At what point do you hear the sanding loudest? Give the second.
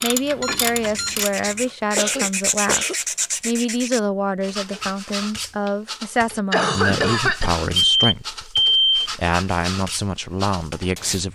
3 s.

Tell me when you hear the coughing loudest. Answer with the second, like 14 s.
7 s.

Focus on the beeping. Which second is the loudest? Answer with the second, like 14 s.
9 s.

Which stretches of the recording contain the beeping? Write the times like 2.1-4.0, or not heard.
0.4-1.2, 7.9-9.1.